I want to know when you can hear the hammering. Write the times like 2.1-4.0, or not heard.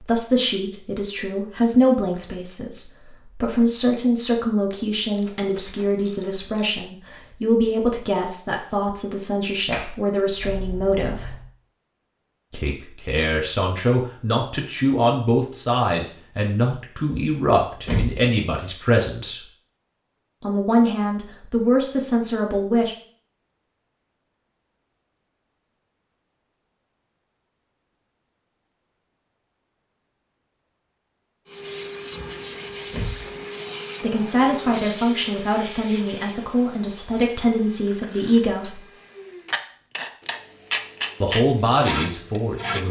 not heard.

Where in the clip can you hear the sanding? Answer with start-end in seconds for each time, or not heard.
39.5-42.8.